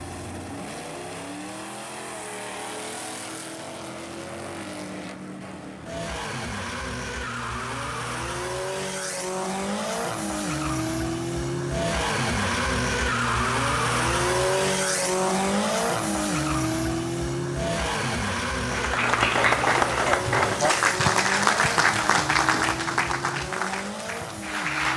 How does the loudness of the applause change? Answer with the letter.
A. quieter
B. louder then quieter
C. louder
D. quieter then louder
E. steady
A.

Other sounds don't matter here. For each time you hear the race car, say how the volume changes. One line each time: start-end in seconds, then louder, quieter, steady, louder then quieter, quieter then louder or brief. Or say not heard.
0.0-24.9 louder then quieter.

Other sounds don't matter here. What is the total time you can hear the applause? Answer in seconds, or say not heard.
6 s.